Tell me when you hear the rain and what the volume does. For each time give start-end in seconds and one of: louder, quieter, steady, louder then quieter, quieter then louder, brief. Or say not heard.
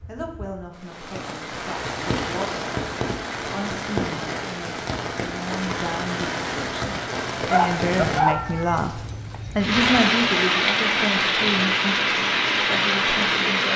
0.0-13.7 louder.